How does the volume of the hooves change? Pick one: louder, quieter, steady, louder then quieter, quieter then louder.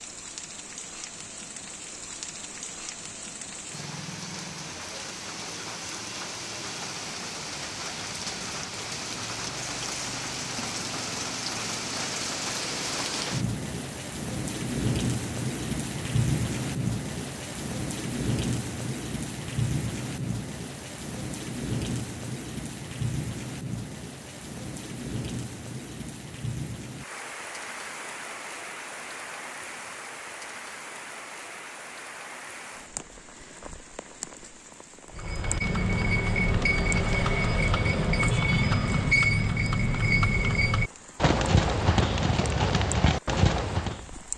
steady.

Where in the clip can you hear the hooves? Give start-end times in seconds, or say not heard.
35.1-44.0.